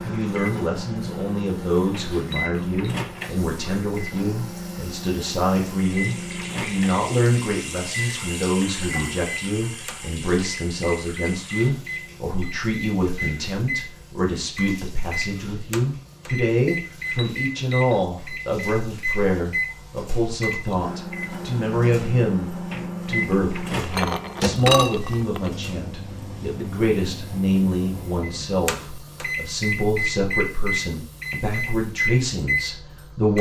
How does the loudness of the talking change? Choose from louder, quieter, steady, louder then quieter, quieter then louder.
steady.